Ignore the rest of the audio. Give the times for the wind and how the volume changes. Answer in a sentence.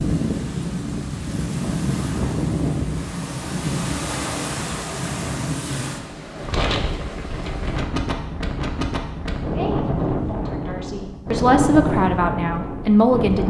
You can hear the wind from 0.0 to 13.4 s, at a steady volume.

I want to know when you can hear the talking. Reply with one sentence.
The talking can be heard from 9.5 to 13.4 s.